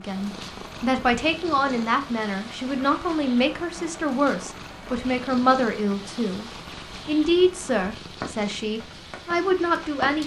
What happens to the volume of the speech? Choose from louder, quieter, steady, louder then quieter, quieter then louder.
steady.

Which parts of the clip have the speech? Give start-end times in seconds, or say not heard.
0.0-10.2.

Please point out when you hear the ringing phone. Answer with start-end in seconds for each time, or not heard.
not heard.